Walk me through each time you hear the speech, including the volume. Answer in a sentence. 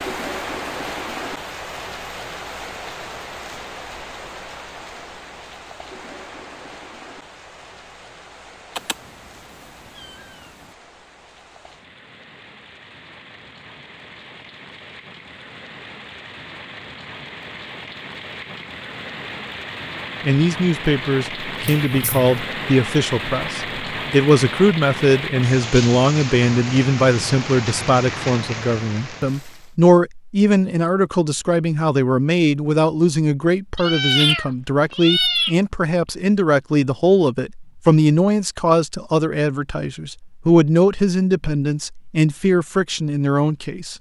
The speech can be heard from 20.2 to 43.9 s, at a steady volume.